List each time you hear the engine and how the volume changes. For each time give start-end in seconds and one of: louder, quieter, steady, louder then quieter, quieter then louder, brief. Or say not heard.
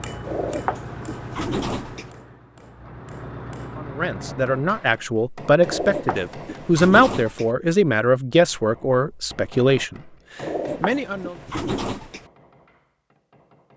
0.0-4.6 quieter then louder.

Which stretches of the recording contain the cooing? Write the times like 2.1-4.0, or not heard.
0.2-2.1, 5.7-7.5, 10.4-12.2.